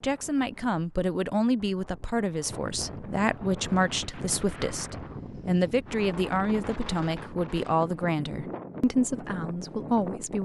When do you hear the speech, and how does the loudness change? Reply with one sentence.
You can hear the speech from 0.0 to 10.3 s, at a steady volume.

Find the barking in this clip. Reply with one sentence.
You can't hear the barking here.